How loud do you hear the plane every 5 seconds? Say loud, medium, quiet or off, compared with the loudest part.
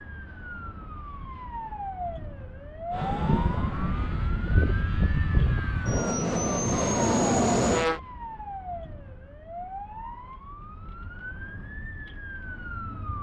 medium, loud, off.